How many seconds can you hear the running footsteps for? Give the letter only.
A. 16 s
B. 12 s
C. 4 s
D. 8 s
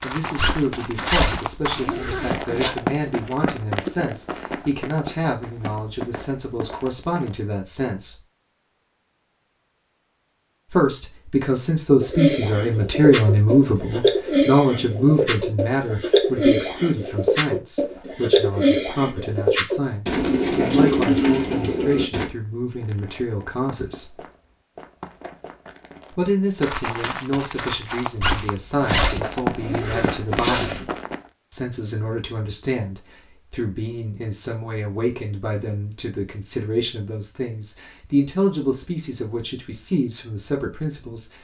A.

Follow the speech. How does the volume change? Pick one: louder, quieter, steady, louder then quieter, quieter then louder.
louder then quieter.